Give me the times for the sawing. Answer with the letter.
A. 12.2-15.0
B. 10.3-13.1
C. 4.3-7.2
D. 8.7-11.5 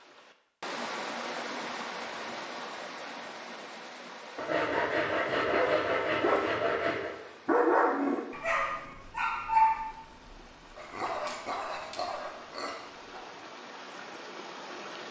C.